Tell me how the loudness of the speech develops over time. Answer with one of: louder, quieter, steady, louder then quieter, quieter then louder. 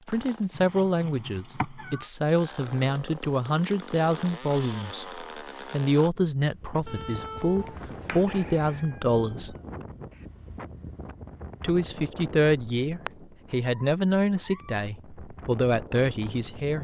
steady.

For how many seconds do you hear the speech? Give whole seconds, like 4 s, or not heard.
15 s.